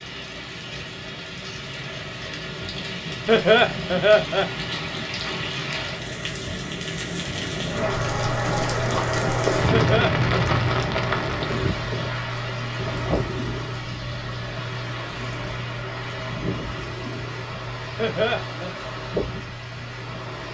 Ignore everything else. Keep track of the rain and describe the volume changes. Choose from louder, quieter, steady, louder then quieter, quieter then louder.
louder then quieter.